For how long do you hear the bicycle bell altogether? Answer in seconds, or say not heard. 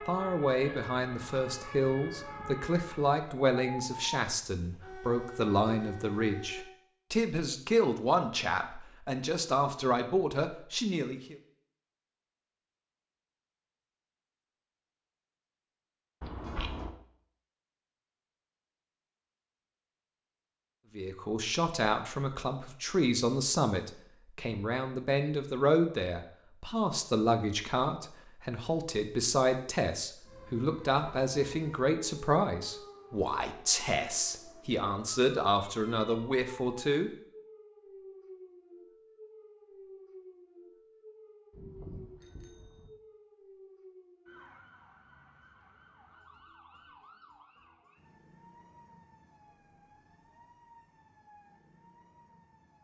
2 s.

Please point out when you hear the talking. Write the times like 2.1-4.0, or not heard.
0.1-11.3, 20.9-37.1.